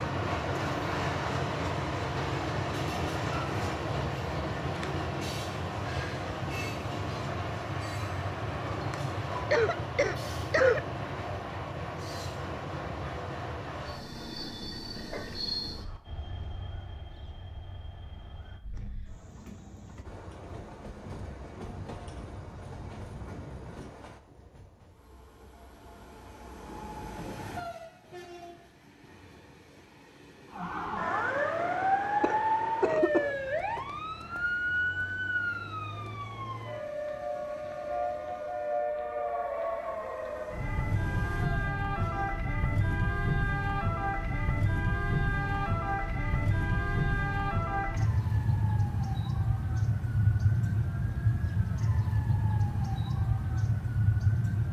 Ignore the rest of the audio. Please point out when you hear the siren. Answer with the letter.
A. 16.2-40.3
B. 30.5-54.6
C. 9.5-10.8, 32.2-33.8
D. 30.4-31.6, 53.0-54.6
B.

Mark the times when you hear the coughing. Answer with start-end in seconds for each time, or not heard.
9.5-10.8, 32.2-33.8.